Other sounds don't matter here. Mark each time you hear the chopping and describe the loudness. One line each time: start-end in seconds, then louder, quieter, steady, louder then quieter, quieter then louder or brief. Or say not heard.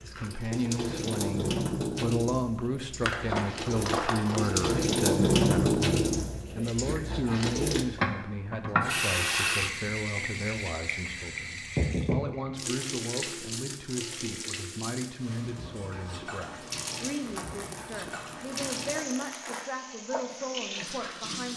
not heard.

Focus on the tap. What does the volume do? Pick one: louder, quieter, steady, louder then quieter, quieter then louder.
louder then quieter.